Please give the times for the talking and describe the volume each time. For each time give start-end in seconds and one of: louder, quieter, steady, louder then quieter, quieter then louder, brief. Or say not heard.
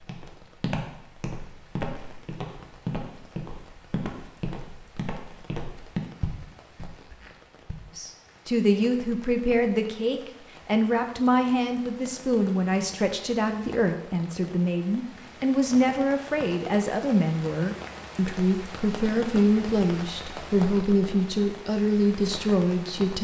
8.0-23.2 steady.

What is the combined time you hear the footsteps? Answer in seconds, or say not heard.
8 s.